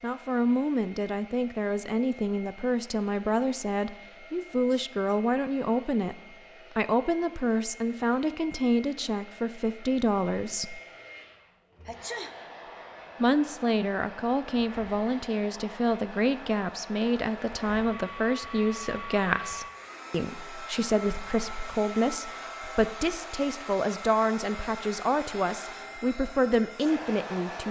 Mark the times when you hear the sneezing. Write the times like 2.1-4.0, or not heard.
11.8-12.3.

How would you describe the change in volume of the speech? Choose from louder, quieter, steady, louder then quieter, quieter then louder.
steady.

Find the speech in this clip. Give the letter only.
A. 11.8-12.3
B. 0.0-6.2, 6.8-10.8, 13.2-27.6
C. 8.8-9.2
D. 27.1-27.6
B.